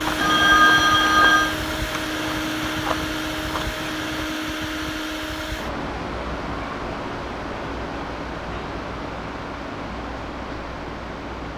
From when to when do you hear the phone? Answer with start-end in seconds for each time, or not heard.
0.1-1.6.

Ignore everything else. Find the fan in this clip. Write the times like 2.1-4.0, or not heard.
0.0-11.5.